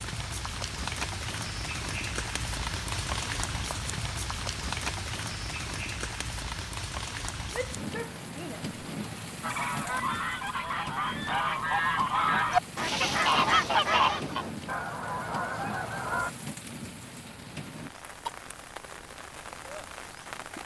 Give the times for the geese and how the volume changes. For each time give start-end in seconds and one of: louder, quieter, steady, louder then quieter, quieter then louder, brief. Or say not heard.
9.4-16.3 louder then quieter.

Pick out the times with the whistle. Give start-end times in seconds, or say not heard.
not heard.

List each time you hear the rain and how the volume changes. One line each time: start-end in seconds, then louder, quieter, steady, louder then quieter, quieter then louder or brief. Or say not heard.
0.0-20.6 quieter.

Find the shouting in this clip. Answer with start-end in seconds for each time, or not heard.
7.5-8.7.